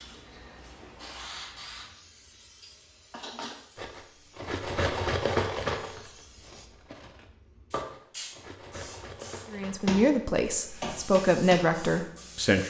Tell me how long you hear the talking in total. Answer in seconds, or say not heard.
3 s.